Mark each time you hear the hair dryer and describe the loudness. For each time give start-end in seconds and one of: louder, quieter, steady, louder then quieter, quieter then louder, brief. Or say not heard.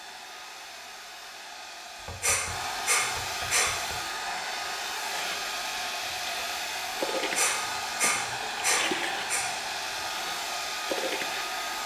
0.0-11.8 louder.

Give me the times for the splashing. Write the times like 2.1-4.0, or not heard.
5.1-11.6.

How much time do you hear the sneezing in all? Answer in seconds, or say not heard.
4 s.